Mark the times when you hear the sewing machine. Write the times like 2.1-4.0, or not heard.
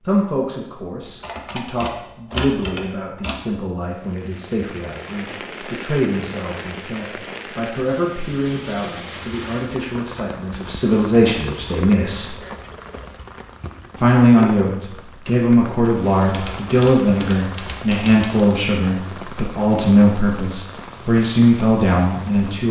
not heard.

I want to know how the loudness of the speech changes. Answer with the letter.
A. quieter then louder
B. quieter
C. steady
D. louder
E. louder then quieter
D.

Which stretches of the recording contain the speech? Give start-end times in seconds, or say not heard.
0.1-12.3, 13.9-22.6.